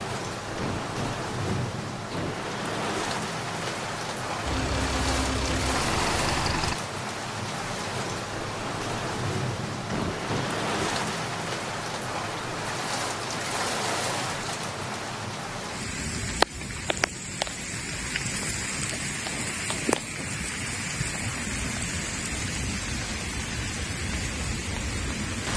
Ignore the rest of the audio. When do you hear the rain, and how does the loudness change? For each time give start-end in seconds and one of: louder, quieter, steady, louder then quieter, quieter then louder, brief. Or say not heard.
0.0-25.5 steady.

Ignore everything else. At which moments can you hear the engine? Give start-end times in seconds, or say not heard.
4.4-6.8.